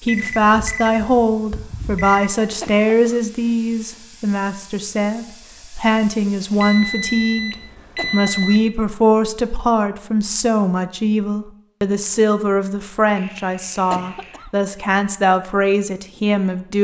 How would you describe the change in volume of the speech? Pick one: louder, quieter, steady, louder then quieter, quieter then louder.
steady.